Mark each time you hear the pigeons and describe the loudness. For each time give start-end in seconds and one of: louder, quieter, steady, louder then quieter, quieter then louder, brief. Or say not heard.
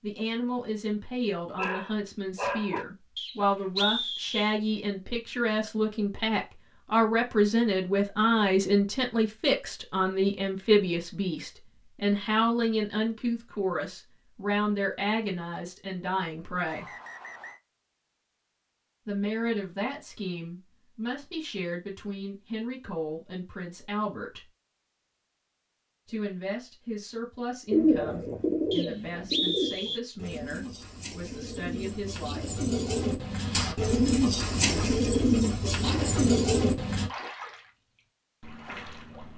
27.7-37.1 quieter then louder.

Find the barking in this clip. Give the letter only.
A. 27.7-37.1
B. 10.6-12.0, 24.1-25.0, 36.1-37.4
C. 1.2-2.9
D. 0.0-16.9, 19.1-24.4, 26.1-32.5
C.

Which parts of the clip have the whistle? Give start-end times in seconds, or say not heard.
3.1-4.6, 16.6-17.6, 28.7-30.0.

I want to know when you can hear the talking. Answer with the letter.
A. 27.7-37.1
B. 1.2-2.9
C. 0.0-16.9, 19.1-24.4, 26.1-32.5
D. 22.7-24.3
C.